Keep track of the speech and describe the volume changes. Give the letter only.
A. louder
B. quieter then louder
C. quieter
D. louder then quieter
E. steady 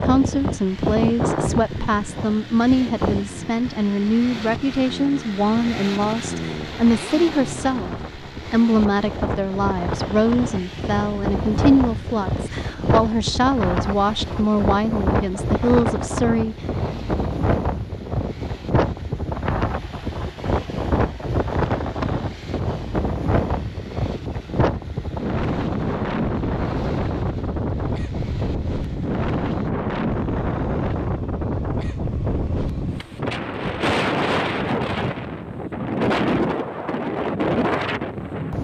E.